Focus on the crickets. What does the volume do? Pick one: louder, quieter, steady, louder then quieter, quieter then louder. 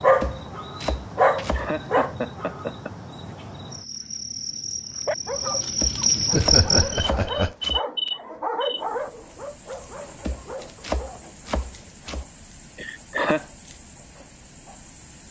louder then quieter.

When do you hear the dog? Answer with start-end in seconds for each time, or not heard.
0.0-2.1, 5.0-11.2.